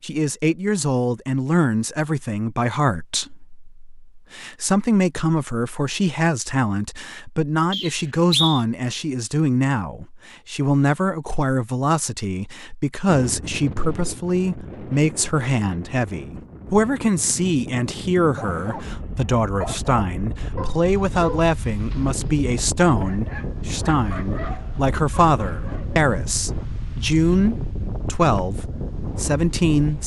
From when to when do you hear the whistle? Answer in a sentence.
You can hear the whistle from 7.7 to 8.7 s.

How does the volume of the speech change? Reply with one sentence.
The loudness of the speech stays about the same.